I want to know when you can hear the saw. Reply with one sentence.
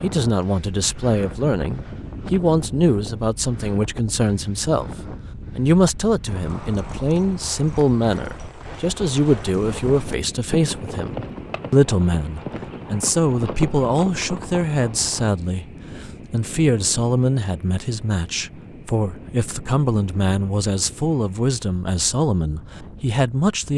You can't hear the saw here.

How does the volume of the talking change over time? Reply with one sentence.
The loudness of the talking stays about the same.